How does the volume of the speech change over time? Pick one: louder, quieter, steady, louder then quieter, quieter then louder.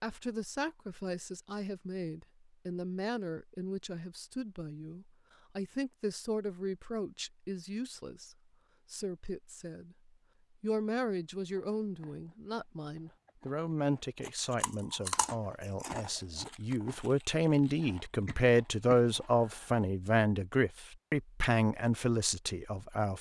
louder.